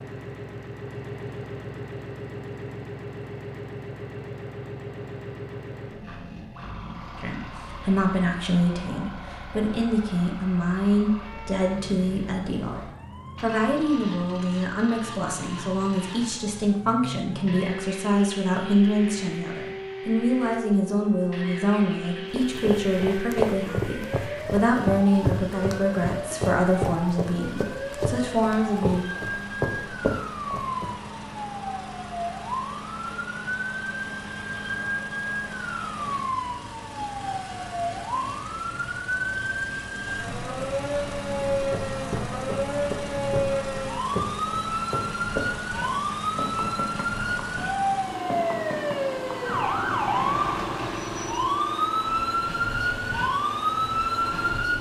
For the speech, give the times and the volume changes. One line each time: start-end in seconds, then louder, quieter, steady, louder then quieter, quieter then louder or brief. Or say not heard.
7.2-12.8 steady
13.4-29.1 steady.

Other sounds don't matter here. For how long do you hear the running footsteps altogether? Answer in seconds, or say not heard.
17 s.